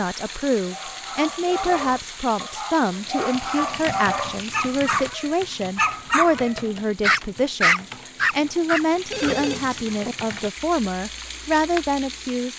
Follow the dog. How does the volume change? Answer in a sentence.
The volume of the dog goes up.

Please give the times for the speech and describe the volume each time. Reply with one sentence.
The speech can be heard from 0.0 to 12.5 s, at a steady volume.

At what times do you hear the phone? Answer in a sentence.
The phone can be heard from 1.4 to 2.5 s and from 9.1 to 10.2 s.